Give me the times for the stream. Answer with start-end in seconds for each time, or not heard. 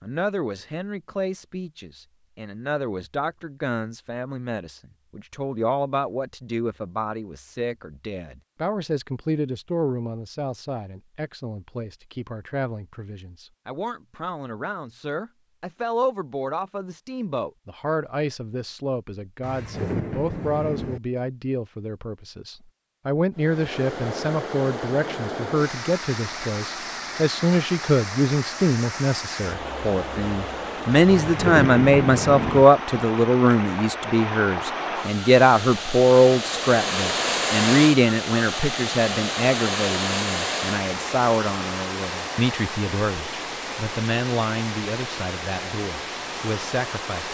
23.4-47.2.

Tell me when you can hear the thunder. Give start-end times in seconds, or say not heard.
19.4-21.0, 31.1-32.6.